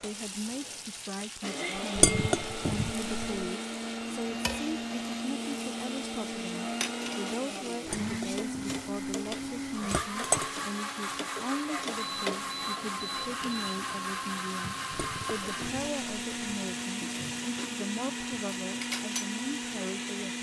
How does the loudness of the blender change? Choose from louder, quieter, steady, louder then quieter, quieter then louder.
steady.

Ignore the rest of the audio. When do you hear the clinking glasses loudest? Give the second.
2 s.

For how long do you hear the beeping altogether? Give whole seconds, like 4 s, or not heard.
2 s.